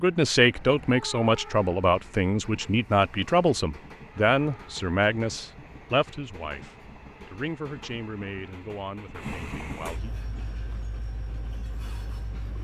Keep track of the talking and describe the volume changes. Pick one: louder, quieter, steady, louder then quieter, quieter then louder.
quieter.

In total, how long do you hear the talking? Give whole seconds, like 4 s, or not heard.
10 s.